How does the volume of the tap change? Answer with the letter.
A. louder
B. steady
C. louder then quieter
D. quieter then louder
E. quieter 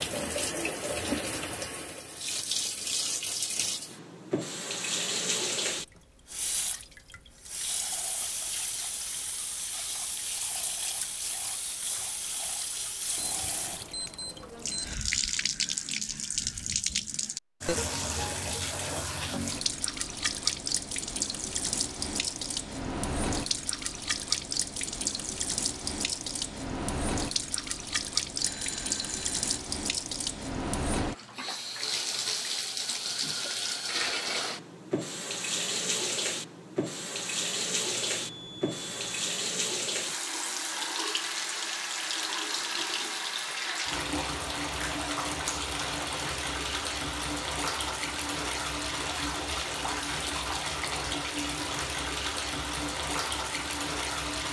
B.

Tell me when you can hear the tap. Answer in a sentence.
The tap can be heard from 0.0 to 54.4 s.